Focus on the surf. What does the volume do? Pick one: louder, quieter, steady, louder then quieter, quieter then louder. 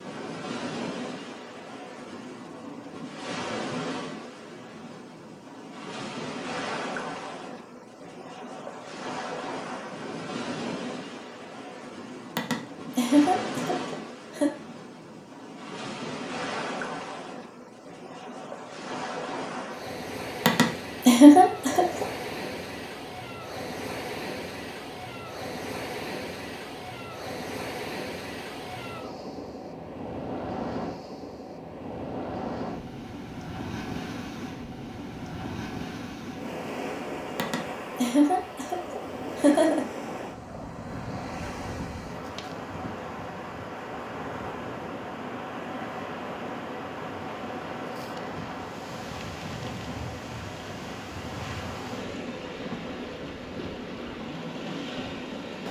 steady.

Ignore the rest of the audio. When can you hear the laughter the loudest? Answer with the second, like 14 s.
21 s.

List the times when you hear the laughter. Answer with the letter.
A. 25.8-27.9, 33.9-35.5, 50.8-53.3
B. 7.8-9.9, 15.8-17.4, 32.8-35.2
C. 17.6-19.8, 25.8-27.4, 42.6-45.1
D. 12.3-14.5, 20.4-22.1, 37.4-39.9
D.